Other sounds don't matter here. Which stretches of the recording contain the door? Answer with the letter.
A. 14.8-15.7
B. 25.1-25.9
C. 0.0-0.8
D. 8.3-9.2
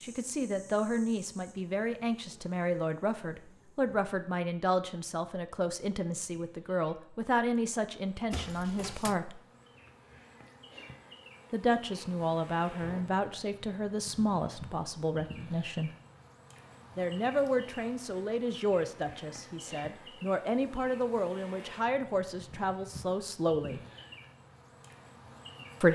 D.